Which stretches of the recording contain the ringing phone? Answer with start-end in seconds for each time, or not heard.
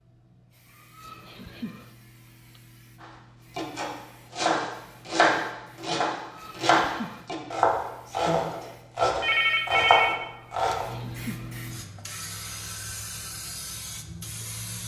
9.2-10.8.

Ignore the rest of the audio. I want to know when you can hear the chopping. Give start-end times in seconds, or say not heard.
3.0-10.9.